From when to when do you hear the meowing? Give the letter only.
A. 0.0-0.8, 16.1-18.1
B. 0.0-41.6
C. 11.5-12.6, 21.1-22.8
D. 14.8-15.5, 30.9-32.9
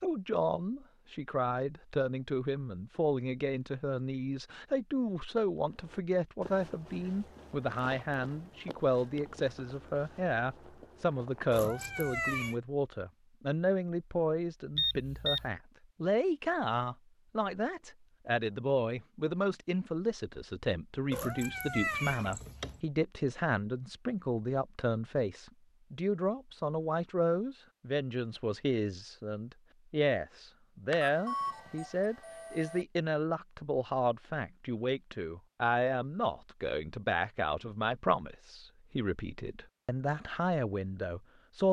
C.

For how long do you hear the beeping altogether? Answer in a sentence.
The beeping can be heard for 3 seconds in total.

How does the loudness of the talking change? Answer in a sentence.
The volume of the talking stays about the same.